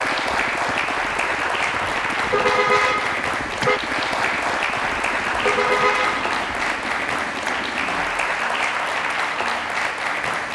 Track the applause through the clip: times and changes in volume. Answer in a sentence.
You can hear the applause from 0.0 to 10.5 s, at a steady volume.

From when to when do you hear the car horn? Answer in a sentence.
You can hear the car horn from 2.3 to 3.8 s and from 5.4 to 6.2 s.